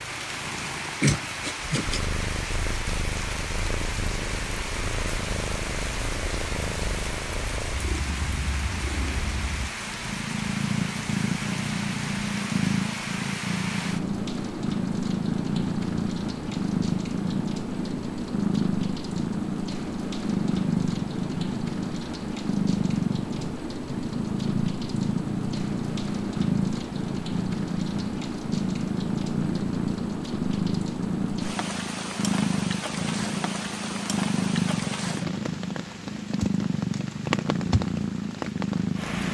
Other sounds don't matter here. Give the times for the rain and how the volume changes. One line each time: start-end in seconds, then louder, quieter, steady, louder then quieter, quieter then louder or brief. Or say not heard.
0.0-39.2 steady.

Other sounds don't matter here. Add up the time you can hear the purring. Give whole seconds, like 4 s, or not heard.
39 s.